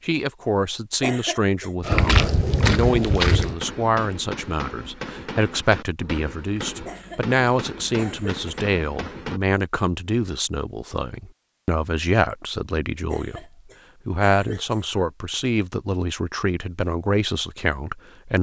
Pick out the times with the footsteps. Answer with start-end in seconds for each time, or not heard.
1.8-3.5.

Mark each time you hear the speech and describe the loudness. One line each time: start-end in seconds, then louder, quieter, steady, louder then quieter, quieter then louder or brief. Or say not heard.
0.0-13.4 steady
14.1-18.3 steady.